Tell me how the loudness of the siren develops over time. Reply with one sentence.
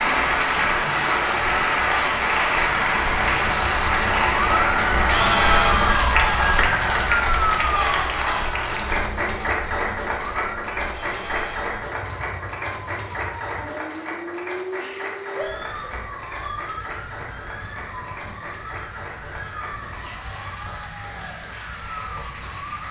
The loudness of the siren goes down.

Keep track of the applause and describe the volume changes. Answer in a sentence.
The volume of the applause goes down.